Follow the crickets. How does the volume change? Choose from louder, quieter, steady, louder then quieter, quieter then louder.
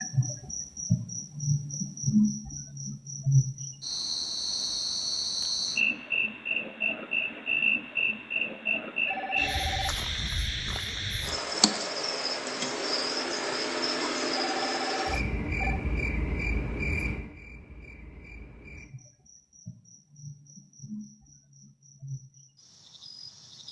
quieter.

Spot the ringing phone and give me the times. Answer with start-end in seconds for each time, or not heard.
9.1-9.9, 14.3-15.8.